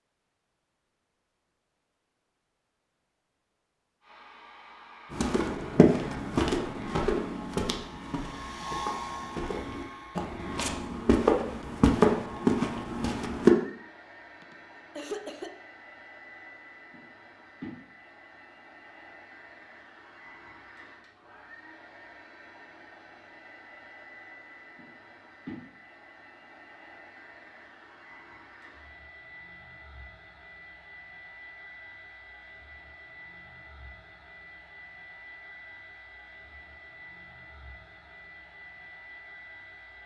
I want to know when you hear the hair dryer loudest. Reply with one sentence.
The volume of the hair dryer peaks at 9 seconds.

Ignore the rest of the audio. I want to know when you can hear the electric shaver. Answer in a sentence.
You can't hear the electric shaver here.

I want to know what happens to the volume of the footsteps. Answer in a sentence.
The loudness of the footsteps goes down, then up.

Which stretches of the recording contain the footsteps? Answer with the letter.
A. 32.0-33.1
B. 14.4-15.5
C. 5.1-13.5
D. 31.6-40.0
C.